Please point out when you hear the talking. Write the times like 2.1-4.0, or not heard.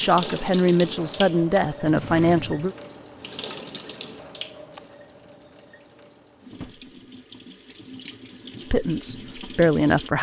0.0-2.8, 8.7-10.1.